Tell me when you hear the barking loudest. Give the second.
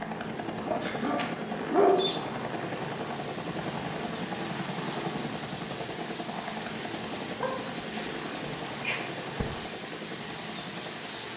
2 s.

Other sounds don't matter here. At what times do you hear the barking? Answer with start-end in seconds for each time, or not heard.
0.7-2.2, 7.4-9.4.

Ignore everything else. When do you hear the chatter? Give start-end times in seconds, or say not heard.
not heard.